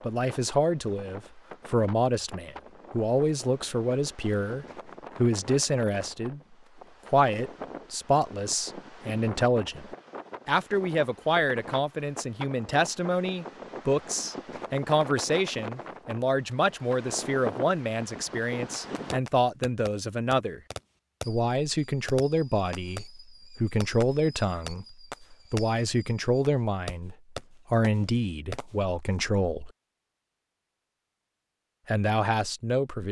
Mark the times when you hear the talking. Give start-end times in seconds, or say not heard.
0.0-6.4, 7.1-20.6, 21.2-29.7, 31.9-33.0.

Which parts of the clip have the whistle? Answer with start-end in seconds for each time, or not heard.
not heard.